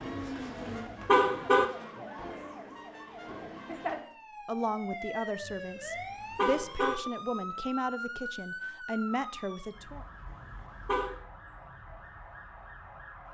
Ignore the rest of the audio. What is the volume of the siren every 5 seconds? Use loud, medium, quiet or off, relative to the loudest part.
loud, loud, medium.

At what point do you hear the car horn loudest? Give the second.
1 s.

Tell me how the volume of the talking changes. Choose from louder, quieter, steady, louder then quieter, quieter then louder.
steady.